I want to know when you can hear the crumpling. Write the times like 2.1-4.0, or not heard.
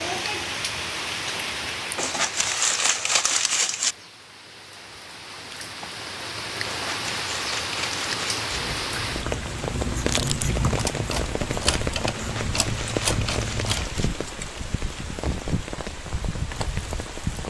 1.9-4.0, 6.7-8.6, 12.2-13.8.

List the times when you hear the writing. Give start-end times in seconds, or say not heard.
8.5-13.8.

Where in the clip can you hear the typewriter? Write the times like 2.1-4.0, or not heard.
10.6-13.9.